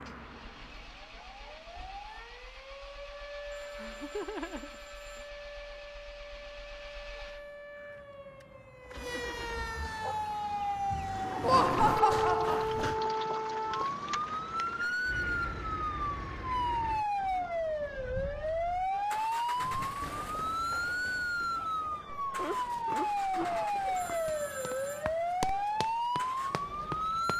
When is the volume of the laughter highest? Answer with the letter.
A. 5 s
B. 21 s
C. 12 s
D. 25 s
C.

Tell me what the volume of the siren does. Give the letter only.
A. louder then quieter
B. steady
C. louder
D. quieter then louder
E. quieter
C.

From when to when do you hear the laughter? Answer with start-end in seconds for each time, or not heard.
3.5-5.2, 11.4-12.7, 22.2-24.1.